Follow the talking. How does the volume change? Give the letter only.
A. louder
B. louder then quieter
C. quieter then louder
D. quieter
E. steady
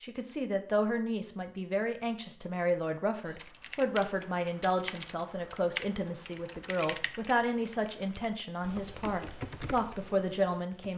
E.